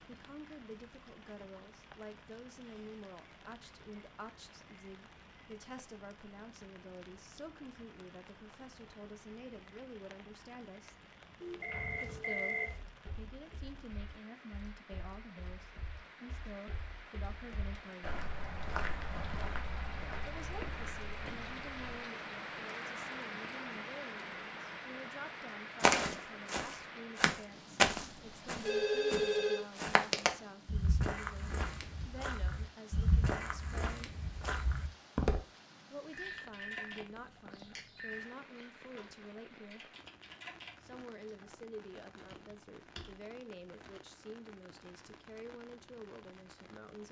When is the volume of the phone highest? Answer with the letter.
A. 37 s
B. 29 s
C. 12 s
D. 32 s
B.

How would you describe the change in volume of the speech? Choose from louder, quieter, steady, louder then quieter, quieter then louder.
steady.